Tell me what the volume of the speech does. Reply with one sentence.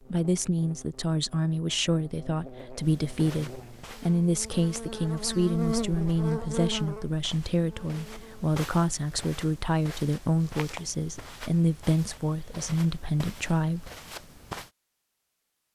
The loudness of the speech stays about the same.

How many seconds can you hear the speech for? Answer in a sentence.
The speech can be heard for 14 seconds in total.